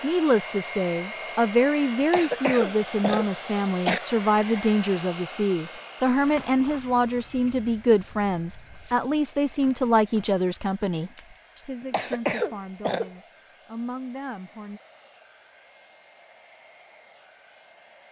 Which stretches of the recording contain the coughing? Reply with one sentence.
You can hear the coughing from 2.1 to 4.0 s and from 11.9 to 13.1 s.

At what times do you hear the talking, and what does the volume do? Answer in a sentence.
You can hear the talking from 0.0 to 14.8 s, getting quieter.